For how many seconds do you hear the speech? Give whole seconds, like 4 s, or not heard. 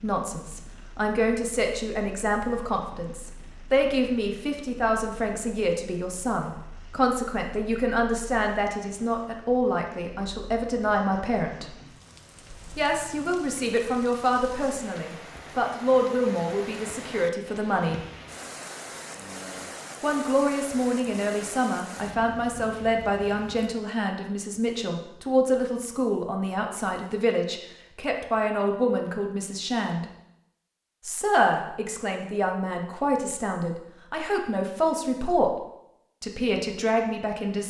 33 s.